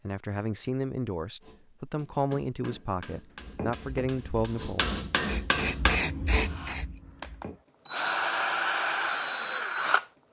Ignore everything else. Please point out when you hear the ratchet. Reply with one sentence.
The ratchet can't be heard in this clip.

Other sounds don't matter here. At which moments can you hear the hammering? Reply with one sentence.
The hammering can be heard from 1.4 to 6.5 s.